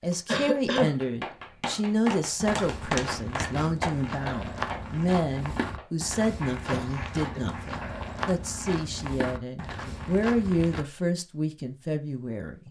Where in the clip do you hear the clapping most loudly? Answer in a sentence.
The loudest moment of the clapping is at 3 seconds.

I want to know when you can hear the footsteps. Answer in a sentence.
You can hear the footsteps from 2.4 to 10.8 s.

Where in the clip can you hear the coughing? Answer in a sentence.
The coughing can be heard from 0.2 to 0.9 s and from 6.7 to 7.5 s.